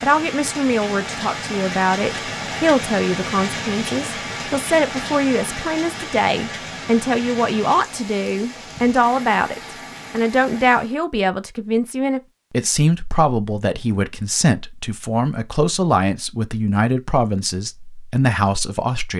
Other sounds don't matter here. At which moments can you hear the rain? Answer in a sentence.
You can hear the rain from 0.0 to 10.9 s.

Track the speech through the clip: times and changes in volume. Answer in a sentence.
You can hear the speech from 0.0 to 19.1 s, at a steady volume.